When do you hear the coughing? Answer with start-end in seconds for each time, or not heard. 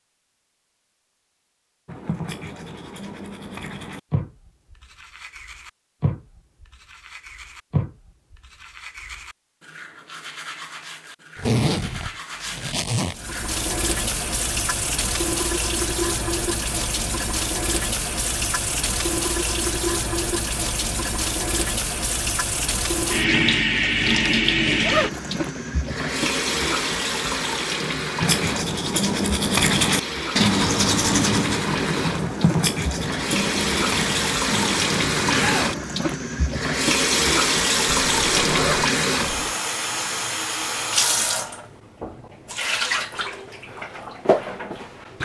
35.3-36.2.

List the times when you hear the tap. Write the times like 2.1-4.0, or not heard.
13.1-45.2.